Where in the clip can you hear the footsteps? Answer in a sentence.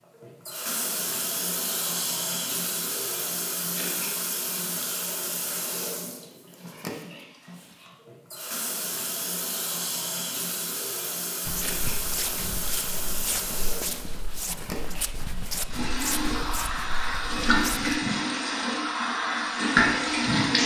You can hear the footsteps from 11.4 to 18.0 s.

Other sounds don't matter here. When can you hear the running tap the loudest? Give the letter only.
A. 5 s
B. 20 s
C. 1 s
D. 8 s
B.